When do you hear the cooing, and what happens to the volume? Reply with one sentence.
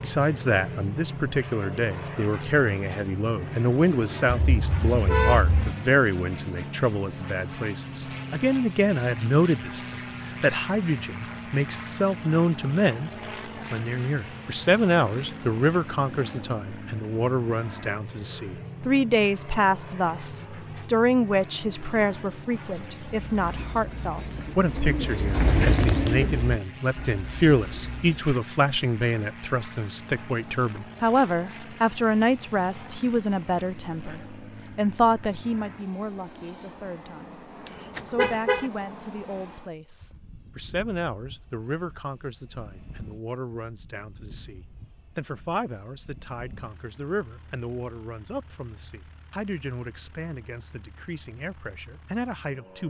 The cooing can be heard from 23.1 to 28.1 s, getting louder then quieter.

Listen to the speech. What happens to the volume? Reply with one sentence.
The volume of the speech goes down.